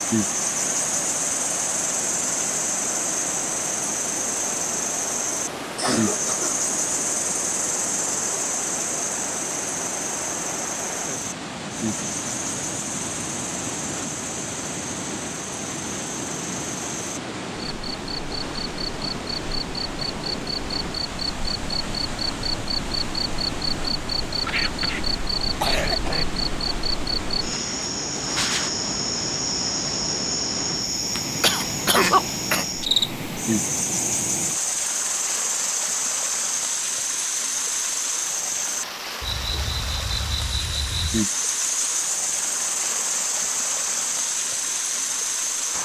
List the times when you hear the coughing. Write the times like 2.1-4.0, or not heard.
5.8-6.5, 24.4-26.2, 31.4-32.6.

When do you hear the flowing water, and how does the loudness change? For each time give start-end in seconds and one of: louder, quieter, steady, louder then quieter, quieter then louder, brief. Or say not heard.
0.0-45.8 steady.